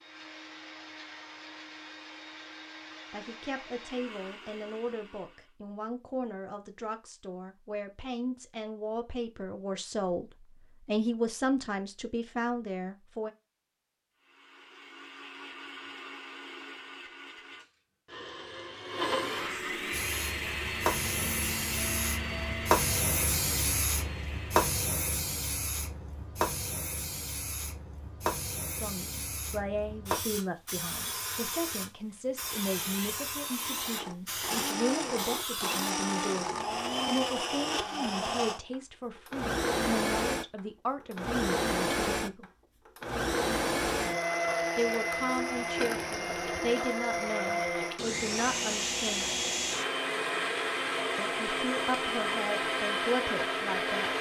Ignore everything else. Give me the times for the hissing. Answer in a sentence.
You can hear the hissing from 19.9 to 36.0 s.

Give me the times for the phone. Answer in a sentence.
The phone can't be heard in this clip.